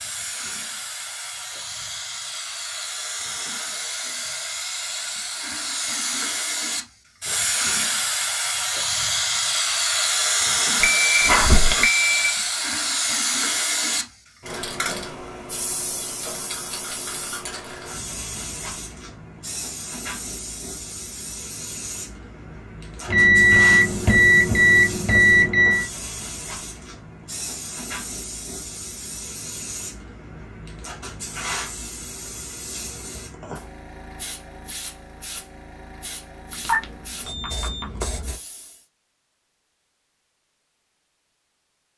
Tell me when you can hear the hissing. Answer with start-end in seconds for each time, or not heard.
0.0-38.9.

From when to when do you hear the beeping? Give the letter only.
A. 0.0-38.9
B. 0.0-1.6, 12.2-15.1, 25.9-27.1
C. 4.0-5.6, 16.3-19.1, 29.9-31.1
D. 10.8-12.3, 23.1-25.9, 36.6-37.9
D.